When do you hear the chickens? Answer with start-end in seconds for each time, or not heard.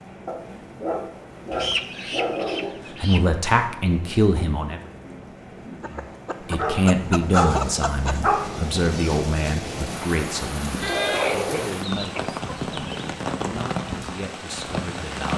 1.5-3.2, 5.8-8.2, 10.8-13.2.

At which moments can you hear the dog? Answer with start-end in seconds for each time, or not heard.
0.2-2.8, 6.5-8.4, 10.7-11.5.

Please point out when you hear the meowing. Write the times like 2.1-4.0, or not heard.
not heard.